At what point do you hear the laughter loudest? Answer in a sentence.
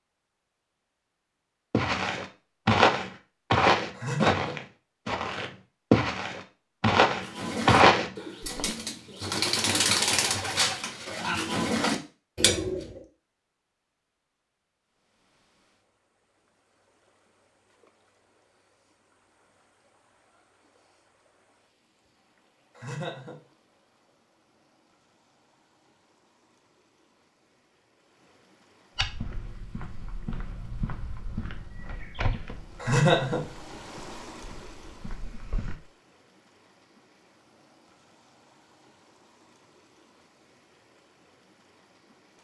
The volume of the laughter peaks at 33 seconds.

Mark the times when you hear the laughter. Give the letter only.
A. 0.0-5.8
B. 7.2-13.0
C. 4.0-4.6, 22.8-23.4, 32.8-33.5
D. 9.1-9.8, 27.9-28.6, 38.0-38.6
C.